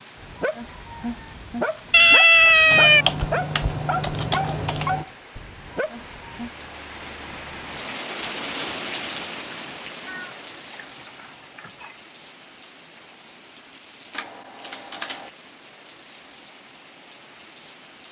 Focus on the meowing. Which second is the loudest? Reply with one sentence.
The loudest moment of the meowing is at 2 seconds.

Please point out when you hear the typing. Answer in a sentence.
You can hear the typing from 2.7 to 5.0 s and from 14.1 to 15.3 s.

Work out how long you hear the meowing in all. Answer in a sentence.
You can hear the meowing for 3 seconds altogether.